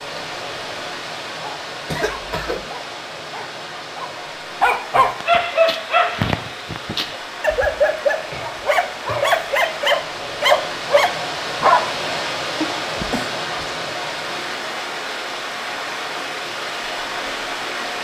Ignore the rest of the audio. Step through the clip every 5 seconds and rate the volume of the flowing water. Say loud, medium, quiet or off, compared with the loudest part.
medium, medium, loud, loud.